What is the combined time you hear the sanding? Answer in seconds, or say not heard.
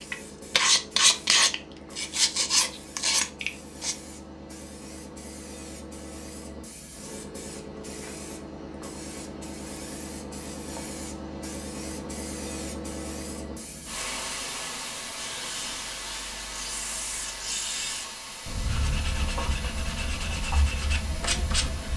11 s.